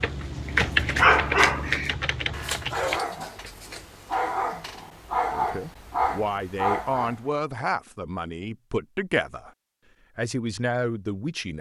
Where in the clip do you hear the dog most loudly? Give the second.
1 s.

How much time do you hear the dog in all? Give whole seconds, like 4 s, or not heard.
7 s.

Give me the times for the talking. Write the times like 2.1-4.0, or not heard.
5.3-9.5, 10.2-11.5.